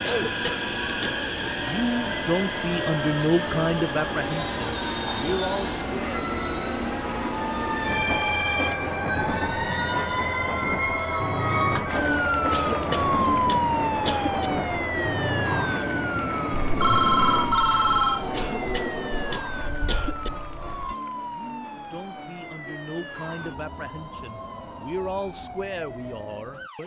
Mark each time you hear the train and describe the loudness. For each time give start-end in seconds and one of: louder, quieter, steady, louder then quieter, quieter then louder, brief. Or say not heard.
0.0-20.9 steady.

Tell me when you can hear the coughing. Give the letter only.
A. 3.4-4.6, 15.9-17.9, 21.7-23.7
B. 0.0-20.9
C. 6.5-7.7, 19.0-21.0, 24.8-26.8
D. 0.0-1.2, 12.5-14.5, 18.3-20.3
D.